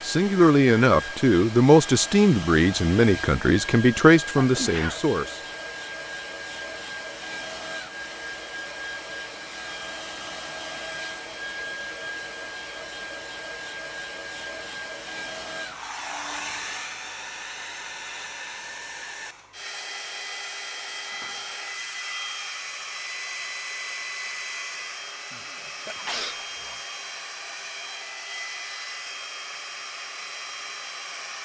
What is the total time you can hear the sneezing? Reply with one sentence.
You can hear the sneezing for 2 seconds altogether.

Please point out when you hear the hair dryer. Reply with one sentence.
You can hear the hair dryer from 0.0 to 31.4 s.